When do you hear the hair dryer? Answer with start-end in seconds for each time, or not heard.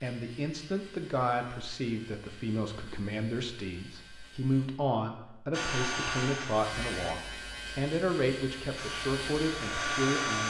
5.5-7.2, 8.8-10.4.